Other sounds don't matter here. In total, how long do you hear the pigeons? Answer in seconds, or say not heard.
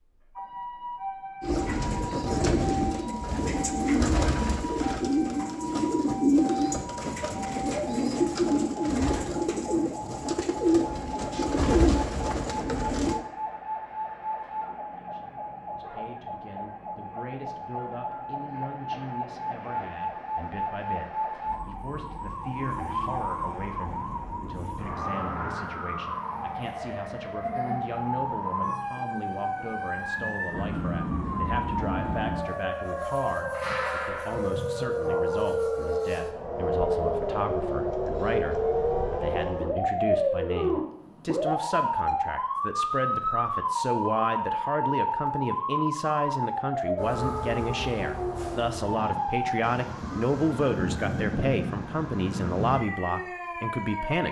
12 s.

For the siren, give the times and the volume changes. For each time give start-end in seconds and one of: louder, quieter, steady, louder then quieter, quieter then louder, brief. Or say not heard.
0.1-54.2 louder.